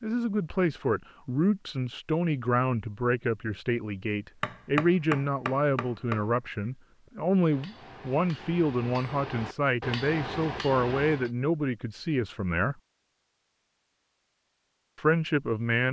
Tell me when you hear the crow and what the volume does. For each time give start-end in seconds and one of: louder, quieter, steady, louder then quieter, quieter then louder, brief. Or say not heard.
not heard.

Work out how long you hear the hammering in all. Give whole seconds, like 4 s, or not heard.
7 s.